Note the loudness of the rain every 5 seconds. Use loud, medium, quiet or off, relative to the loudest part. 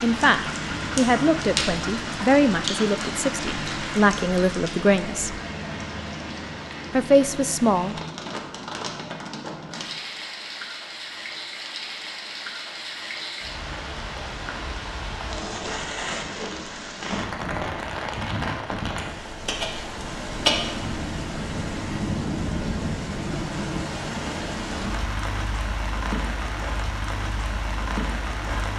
loud, medium, medium, loud, loud, loud.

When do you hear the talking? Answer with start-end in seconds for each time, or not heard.
0.0-5.4, 6.9-8.0.